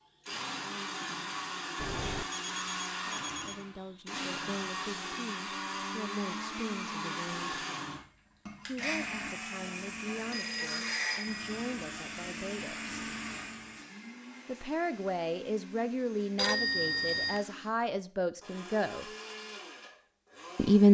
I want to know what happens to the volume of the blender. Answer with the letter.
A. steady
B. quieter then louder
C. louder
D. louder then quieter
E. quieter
E.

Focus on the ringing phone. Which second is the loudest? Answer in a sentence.
The loudest moment of the ringing phone is at 17 seconds.